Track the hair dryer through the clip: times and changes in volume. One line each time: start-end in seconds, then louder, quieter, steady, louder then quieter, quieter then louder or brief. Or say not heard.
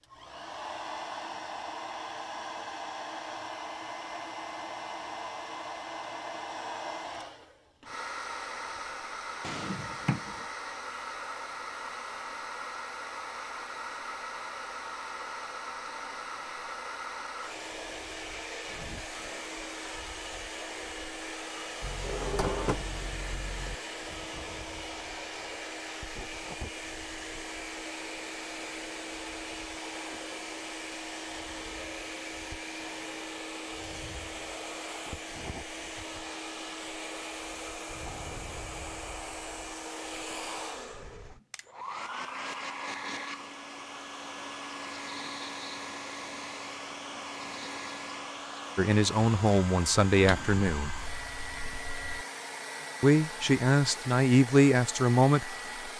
0.0-55.9 steady.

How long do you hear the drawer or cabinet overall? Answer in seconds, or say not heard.
5 s.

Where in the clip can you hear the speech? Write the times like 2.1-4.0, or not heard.
48.8-50.9, 53.0-55.9.